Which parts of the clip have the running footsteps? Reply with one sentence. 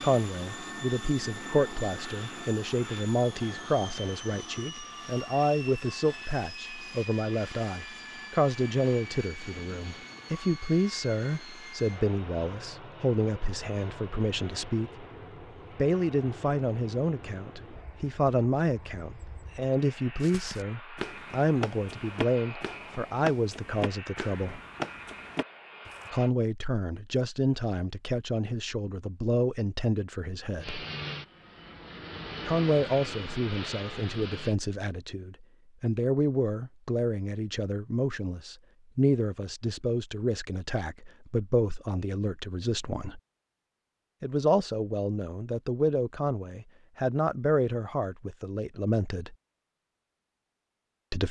You can hear the running footsteps from 20.2 to 26.1 s.